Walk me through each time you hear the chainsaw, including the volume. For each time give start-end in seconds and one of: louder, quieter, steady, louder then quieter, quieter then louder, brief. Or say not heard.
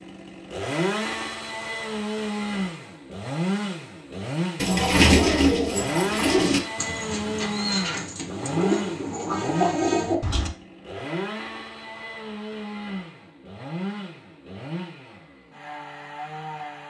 0.0-16.8 quieter.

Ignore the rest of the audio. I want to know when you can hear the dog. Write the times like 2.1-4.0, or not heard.
not heard.